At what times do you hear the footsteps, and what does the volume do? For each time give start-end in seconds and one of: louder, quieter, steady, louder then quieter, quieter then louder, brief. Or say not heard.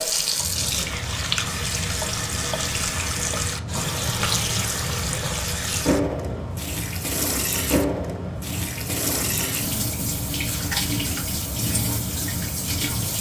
not heard.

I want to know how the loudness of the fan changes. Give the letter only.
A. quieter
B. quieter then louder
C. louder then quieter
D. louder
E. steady
E.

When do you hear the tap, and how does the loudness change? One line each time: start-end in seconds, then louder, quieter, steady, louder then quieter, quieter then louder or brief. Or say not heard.
0.0-13.1 steady.